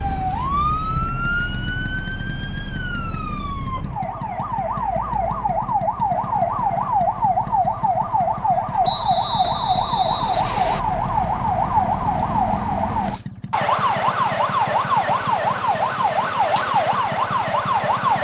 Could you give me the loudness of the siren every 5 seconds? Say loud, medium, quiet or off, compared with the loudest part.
medium, loud, loud, loud.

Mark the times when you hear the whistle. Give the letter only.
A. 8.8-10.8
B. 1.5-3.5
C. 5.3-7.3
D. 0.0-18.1
A.